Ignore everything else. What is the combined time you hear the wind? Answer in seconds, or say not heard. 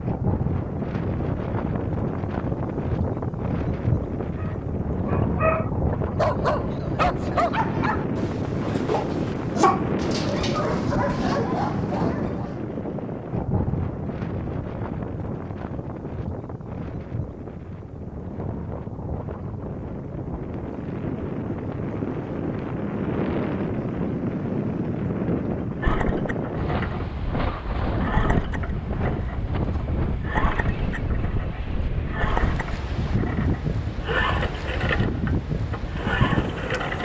37 s.